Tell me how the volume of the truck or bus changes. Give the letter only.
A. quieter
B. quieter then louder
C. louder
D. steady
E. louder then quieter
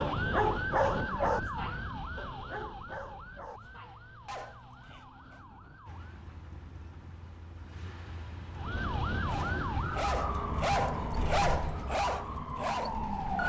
E.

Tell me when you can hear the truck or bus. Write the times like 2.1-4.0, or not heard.
5.8-13.4.